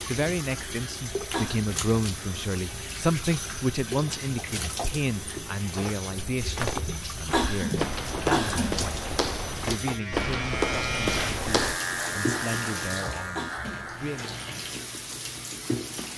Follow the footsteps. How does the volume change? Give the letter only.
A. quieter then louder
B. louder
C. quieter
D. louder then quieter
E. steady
B.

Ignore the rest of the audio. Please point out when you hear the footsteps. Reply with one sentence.
You can hear the footsteps from 6.3 to 11.8 s.